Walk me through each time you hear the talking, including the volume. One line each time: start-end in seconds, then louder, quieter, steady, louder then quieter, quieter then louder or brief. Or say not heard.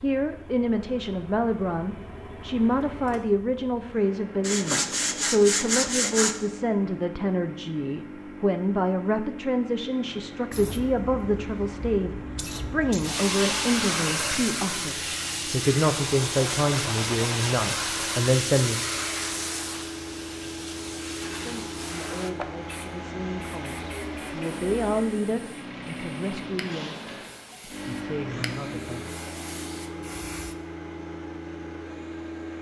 0.0-18.8 steady
21.4-29.1 louder then quieter.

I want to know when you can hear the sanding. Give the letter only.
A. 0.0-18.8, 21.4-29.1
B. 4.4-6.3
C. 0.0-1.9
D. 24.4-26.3
B.